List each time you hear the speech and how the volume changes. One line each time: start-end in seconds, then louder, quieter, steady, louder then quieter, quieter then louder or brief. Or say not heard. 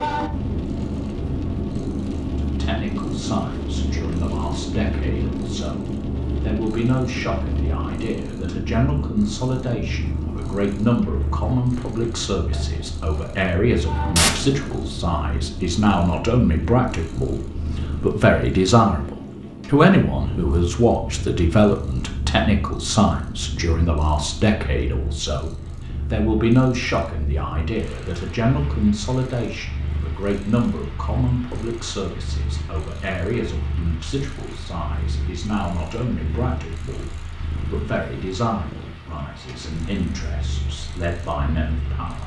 2.4-42.2 louder then quieter.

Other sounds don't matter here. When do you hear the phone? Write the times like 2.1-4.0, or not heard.
14.2-14.6.